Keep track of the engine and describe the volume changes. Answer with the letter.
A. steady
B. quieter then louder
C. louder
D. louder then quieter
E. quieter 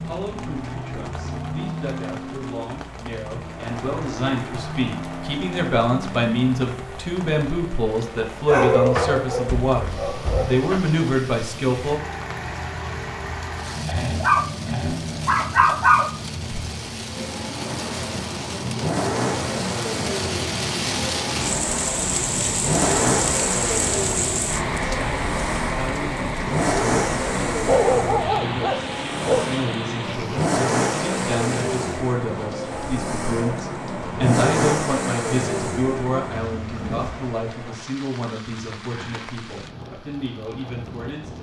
C.